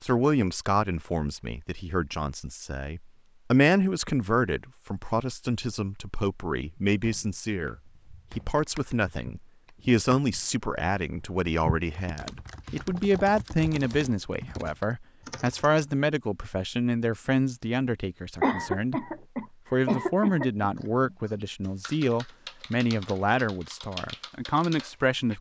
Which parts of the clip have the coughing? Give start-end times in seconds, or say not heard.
18.4-20.6.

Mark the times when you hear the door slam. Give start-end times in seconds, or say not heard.
not heard.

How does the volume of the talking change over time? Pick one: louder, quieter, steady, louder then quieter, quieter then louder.
steady.